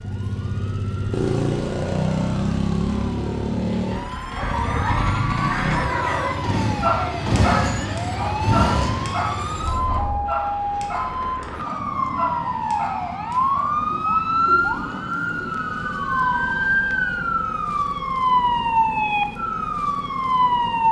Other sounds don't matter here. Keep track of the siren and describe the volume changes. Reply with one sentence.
The loudness of the siren goes up.